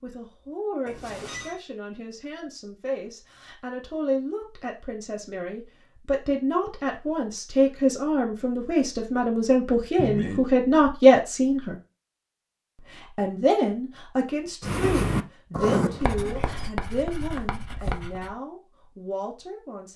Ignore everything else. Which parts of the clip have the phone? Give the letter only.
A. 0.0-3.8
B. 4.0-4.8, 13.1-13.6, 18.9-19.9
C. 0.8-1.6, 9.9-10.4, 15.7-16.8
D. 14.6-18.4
C.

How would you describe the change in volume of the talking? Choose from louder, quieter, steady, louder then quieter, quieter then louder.
louder then quieter.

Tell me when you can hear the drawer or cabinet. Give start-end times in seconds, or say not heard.
not heard.